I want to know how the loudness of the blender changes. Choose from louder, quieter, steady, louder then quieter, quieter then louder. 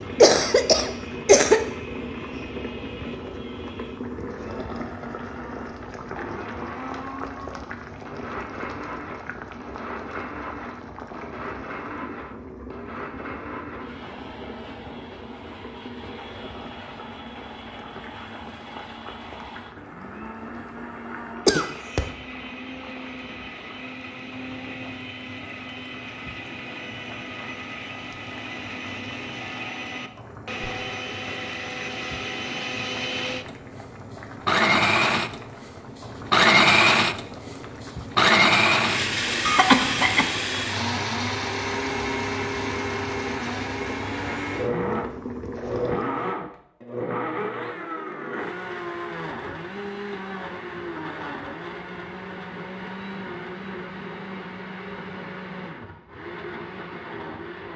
louder then quieter.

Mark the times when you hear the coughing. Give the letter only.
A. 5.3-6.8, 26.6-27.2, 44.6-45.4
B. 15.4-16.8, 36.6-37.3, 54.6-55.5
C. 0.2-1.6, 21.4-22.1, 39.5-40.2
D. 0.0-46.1
C.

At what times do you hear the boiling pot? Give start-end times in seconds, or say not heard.
0.0-46.1.